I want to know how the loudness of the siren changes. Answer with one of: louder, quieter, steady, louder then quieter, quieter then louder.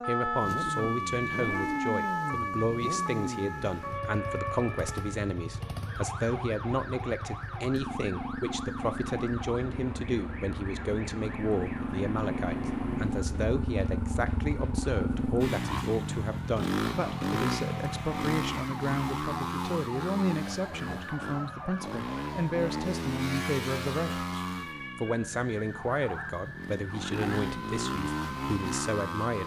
quieter.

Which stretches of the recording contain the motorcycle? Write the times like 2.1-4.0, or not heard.
0.0-29.4.